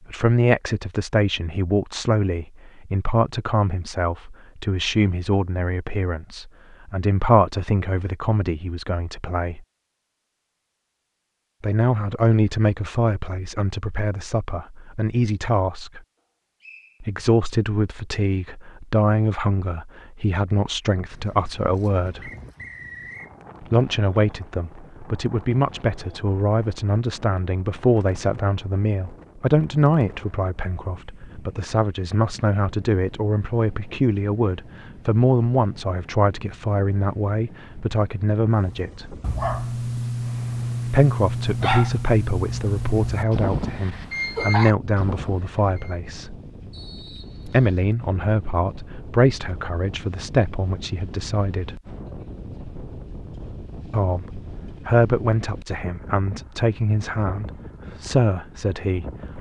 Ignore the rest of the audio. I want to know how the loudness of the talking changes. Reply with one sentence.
The loudness of the talking stays about the same.